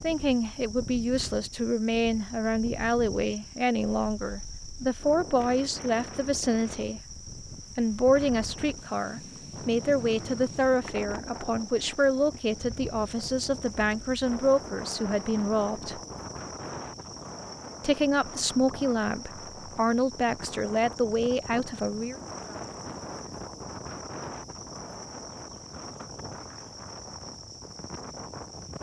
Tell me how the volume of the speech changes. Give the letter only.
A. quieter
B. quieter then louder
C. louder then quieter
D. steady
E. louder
D.